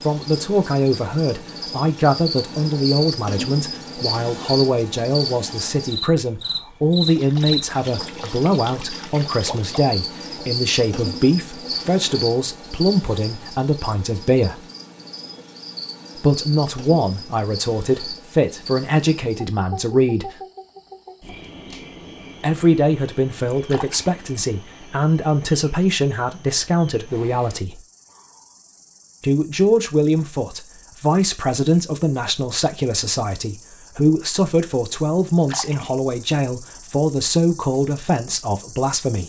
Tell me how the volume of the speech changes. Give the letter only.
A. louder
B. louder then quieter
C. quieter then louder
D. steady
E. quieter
D.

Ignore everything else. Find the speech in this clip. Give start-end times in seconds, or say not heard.
0.0-14.6, 16.1-20.4, 22.4-27.8, 29.2-39.2.